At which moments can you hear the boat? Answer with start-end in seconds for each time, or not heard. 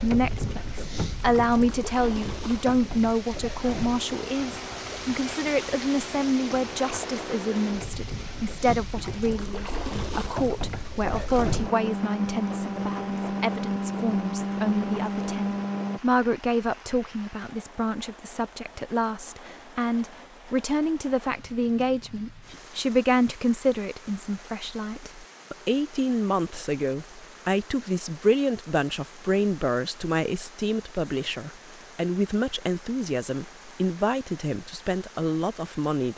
0.0-16.0.